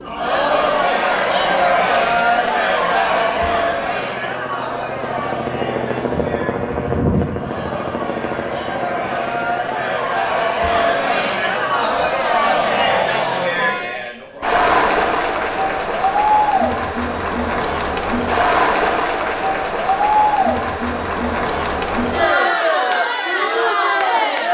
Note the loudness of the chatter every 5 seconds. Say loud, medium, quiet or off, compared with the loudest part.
loud, medium, loud, loud, loud.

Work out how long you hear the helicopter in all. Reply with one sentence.
The helicopter can be heard for 13 seconds in total.